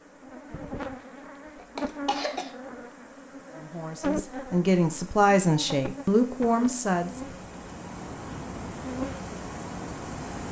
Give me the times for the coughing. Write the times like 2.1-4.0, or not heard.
1.6-2.5.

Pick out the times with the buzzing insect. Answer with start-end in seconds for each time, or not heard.
0.0-10.4.